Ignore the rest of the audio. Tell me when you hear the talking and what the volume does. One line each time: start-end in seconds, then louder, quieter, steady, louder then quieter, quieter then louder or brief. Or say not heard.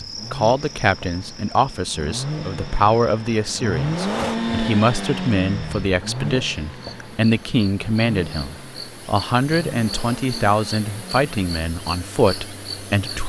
0.0-13.2 steady.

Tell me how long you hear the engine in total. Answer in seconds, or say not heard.
13 s.